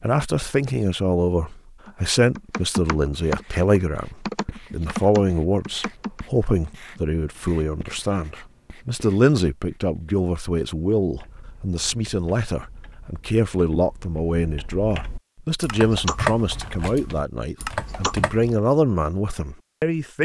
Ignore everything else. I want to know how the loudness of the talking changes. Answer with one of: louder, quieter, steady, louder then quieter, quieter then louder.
steady.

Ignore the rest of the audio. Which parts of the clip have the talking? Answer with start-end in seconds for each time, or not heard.
0.0-20.2.